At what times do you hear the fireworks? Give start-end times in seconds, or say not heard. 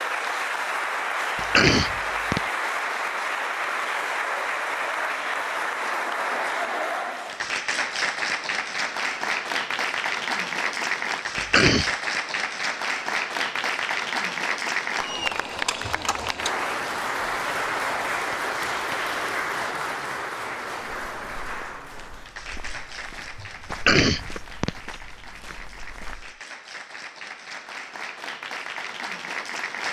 not heard.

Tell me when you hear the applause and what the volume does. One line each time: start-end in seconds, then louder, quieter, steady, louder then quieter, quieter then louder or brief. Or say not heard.
0.0-29.8 quieter.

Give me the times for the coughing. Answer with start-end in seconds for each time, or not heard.
1.4-2.4, 11.3-11.9, 23.7-24.7.